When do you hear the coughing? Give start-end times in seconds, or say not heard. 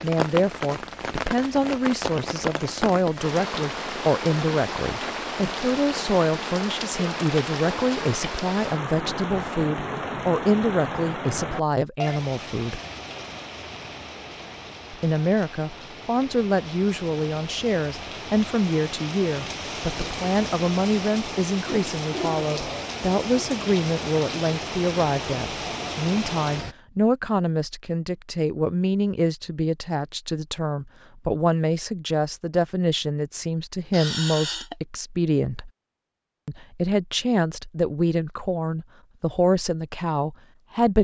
33.9-34.8.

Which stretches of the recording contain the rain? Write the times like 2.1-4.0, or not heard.
0.0-26.8.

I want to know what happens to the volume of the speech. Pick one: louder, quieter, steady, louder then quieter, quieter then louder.
steady.